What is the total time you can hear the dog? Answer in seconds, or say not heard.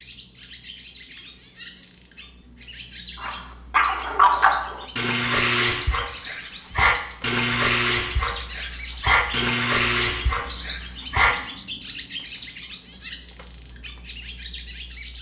8 s.